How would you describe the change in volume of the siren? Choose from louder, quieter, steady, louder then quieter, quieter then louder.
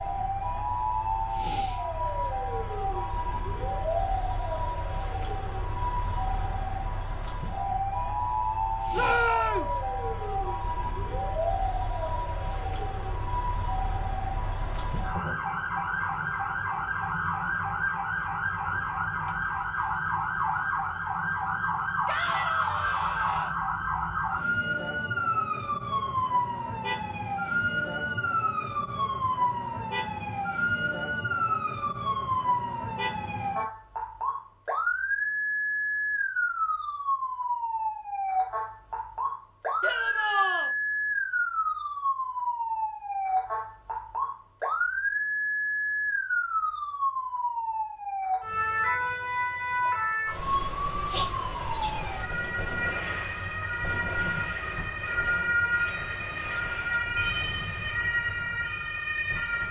steady.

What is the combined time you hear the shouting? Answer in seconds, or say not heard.
3 s.